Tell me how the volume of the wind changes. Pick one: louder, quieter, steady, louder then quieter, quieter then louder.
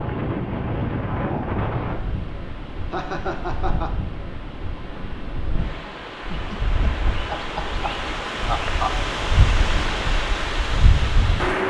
quieter then louder.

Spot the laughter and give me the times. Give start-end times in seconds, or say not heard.
2.9-4.0, 6.3-8.9.